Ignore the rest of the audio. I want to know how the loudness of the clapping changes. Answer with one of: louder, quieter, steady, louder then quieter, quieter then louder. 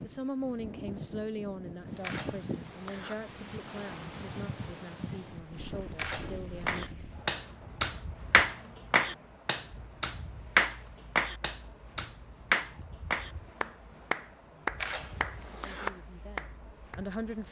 quieter.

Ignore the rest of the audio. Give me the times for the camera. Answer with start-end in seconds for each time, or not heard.
2.0-3.1, 6.0-7.0, 14.8-15.9.